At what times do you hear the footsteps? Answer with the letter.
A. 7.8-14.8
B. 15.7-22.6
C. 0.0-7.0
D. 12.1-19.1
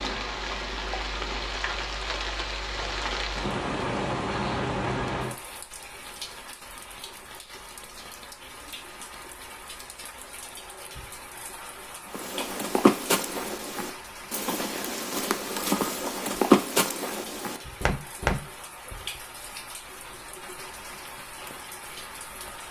D.